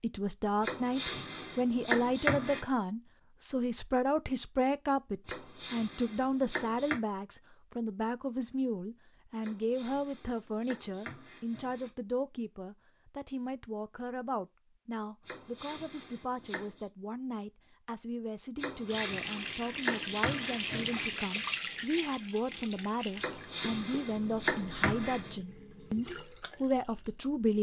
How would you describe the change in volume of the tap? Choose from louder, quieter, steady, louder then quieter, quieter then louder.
quieter.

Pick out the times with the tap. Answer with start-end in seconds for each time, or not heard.
18.9-27.4.